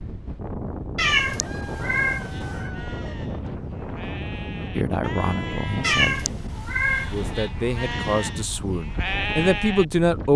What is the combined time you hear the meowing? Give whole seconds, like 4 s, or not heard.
3 s.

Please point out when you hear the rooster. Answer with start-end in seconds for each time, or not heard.
1.2-3.1.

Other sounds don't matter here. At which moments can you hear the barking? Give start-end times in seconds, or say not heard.
not heard.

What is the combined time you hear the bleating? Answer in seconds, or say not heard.
8 s.